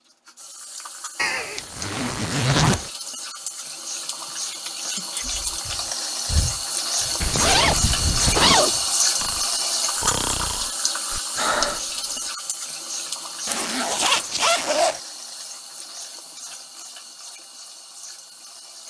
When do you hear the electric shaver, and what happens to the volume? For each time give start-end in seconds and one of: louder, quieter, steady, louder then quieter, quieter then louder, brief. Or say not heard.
not heard.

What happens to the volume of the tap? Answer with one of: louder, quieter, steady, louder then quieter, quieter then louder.
louder then quieter.